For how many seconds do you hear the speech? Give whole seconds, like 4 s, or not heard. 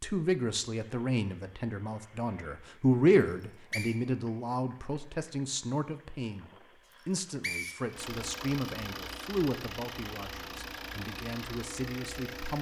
12 s.